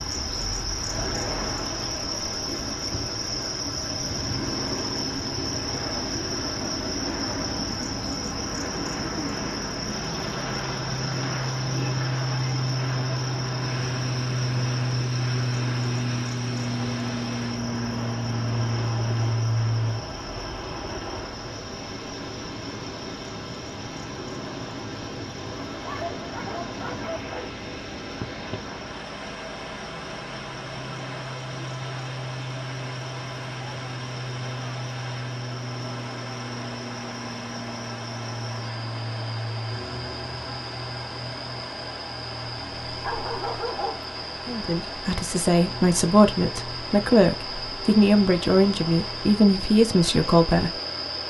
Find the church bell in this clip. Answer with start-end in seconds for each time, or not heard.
not heard.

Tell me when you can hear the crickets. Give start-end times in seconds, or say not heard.
0.0-51.2.